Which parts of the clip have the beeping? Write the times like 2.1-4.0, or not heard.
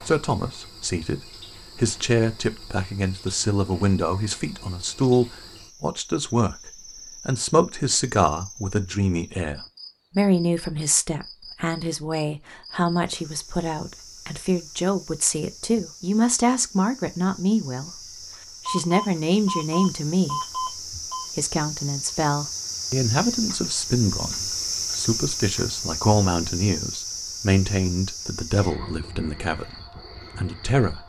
18.6-21.2.